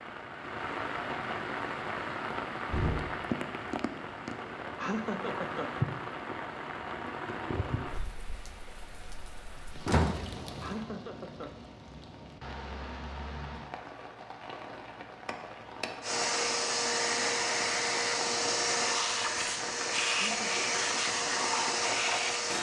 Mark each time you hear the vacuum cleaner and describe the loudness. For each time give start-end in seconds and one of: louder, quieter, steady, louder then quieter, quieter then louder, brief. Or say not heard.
16.0-22.5 steady.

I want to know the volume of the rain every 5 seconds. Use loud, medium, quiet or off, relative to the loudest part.
loud, loud, medium, medium, medium.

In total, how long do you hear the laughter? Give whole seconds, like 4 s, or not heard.
3 s.